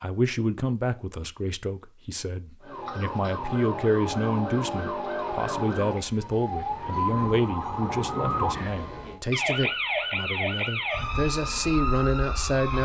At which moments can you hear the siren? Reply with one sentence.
You can hear the siren from 2.6 to 12.8 s.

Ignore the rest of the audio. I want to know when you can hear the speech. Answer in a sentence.
You can hear the speech from 0.0 to 12.8 s.